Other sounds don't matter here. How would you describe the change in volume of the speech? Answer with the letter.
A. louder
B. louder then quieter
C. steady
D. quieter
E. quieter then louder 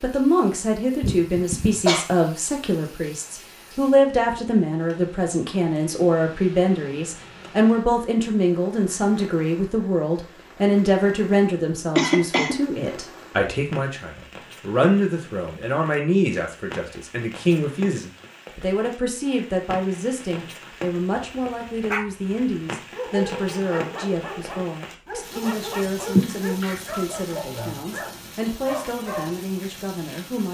D.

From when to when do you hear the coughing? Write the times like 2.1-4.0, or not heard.
1.0-2.0, 11.9-12.6, 26.1-26.8.